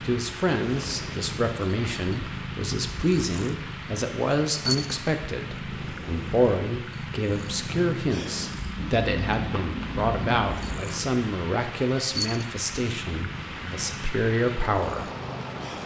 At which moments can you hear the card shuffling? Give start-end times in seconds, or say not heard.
8.8-10.8.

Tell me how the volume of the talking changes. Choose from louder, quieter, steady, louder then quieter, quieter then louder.
steady.